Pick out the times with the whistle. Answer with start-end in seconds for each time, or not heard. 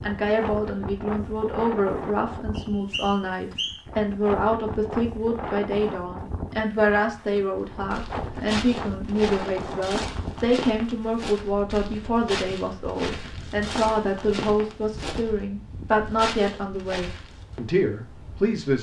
2.5-3.8.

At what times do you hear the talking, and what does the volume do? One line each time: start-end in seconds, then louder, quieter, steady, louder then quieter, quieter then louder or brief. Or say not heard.
0.0-18.7 steady.